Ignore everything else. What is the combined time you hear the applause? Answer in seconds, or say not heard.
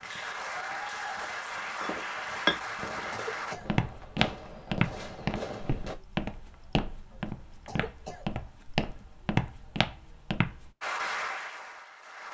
5 s.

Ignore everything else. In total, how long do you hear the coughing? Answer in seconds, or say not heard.
2 s.